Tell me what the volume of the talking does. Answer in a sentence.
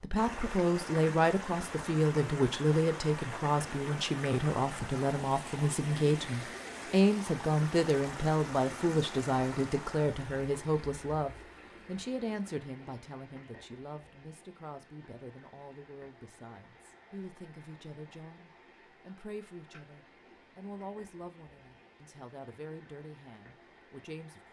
The loudness of the talking goes down.